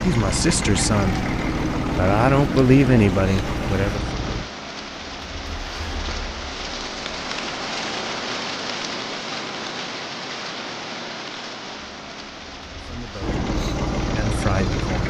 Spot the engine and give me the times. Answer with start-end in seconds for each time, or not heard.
0.0-4.5, 13.2-15.0.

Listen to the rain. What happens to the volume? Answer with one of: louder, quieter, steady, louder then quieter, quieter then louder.
louder then quieter.